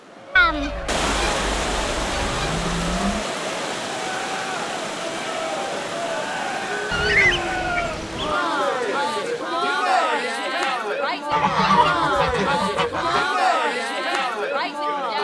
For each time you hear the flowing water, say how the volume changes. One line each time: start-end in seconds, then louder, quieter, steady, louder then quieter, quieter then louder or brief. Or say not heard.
0.0-9.8 quieter.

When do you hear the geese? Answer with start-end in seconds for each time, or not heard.
0.3-3.2, 6.9-8.3, 11.3-13.2.